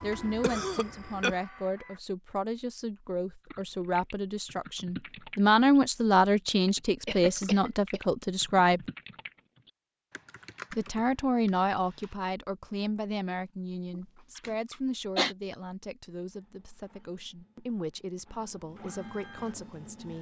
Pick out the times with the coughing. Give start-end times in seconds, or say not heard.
0.0-1.4, 7.0-8.0, 13.9-15.3.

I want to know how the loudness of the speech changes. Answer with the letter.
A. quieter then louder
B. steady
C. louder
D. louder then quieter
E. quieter
D.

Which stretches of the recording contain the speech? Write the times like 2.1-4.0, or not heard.
0.0-8.8, 10.7-20.1.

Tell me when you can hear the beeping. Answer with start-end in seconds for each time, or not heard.
not heard.